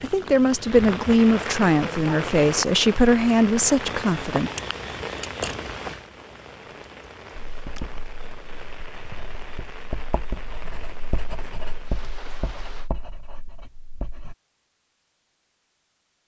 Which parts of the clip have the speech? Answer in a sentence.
The speech can be heard from 0.0 to 4.5 s.